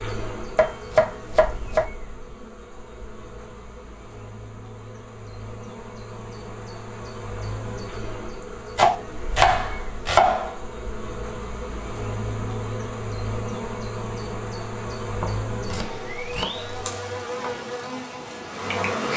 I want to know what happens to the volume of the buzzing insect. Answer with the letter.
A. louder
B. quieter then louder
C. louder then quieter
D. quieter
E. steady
A.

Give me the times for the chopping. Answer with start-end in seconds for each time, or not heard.
0.6-1.9, 8.8-10.6, 15.2-16.6.